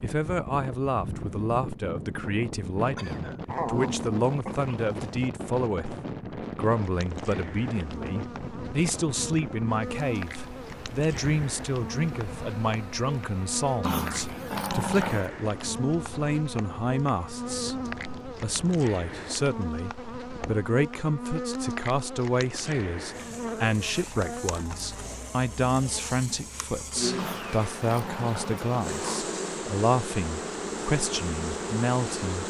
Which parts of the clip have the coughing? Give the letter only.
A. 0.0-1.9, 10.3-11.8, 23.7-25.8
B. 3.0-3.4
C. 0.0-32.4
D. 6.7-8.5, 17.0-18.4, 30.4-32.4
B.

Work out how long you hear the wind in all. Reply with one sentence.
The wind can be heard for 21 seconds in total.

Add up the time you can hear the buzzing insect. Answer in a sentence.
You can hear the buzzing insect for 26 seconds altogether.